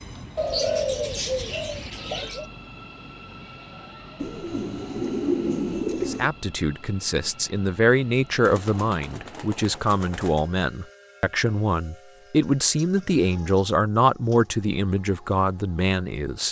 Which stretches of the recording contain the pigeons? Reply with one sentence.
You can hear the pigeons from 0.3 to 2.5 s, from 4.2 to 6.3 s, from 8.4 to 10.5 s and from 12.4 to 14.5 s.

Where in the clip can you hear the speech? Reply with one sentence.
You can hear the speech from 6.0 to 16.4 s.